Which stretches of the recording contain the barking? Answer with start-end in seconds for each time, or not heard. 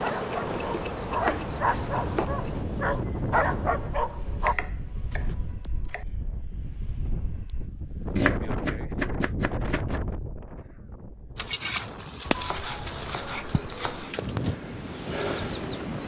0.0-4.5.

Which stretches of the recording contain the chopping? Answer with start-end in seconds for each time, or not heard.
0.5-2.2, 4.2-6.0, 8.2-10.0, 12.2-14.2.